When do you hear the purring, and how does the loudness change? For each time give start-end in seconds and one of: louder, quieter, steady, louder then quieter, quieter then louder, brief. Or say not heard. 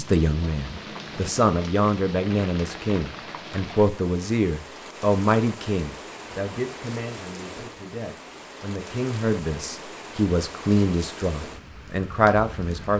not heard.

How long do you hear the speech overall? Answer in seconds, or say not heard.
13 s.